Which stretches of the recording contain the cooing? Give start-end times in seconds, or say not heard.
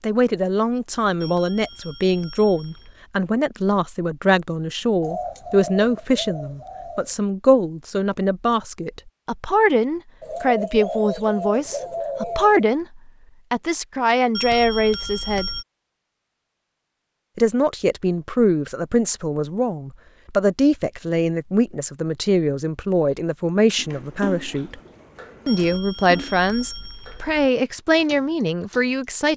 5.0-7.2, 10.2-12.8, 23.8-25.8.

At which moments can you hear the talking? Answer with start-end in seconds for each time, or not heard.
0.0-15.5, 17.4-24.8, 25.4-29.3.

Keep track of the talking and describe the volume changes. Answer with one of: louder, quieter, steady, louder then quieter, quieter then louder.
steady.